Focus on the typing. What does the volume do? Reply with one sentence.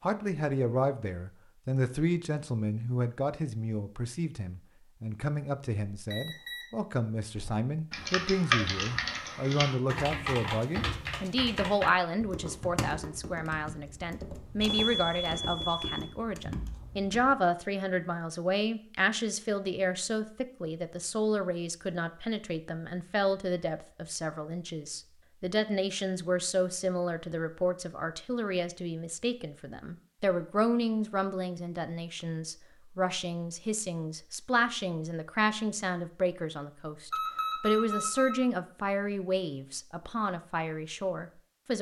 The loudness of the typing goes down.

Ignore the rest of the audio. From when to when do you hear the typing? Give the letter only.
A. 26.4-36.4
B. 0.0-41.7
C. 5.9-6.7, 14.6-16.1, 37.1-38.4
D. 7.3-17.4
D.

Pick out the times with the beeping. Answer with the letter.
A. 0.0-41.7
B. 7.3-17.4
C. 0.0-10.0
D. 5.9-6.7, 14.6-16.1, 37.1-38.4
D.